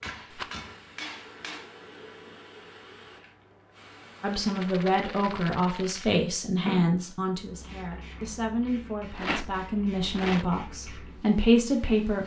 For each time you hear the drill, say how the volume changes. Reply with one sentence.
The drill can't be heard in this clip.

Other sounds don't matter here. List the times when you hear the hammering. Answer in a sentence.
You can hear the hammering from 0.0 to 1.7 s.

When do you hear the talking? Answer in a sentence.
The talking can be heard from 4.2 to 12.2 s.